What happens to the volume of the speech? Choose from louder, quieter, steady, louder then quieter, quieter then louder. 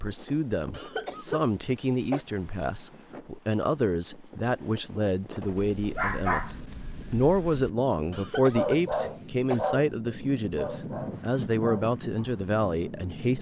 steady.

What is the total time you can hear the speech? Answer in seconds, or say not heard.
13 s.